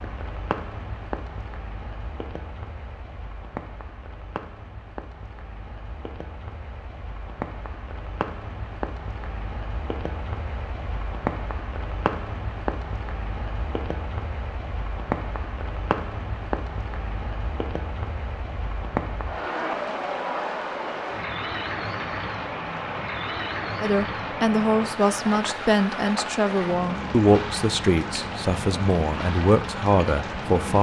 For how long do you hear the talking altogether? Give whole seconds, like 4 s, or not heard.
7 s.